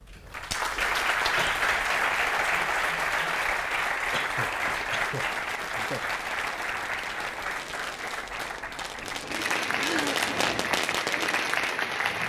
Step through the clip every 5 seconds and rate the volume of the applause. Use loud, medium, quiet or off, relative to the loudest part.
loud, medium, loud.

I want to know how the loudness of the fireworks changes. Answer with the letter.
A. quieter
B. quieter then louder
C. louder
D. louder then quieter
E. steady
C.